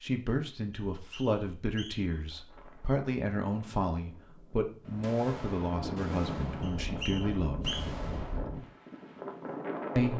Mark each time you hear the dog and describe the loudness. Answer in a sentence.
The dog can't be heard in this clip.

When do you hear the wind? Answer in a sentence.
The wind can be heard from 2.0 to 10.1 s.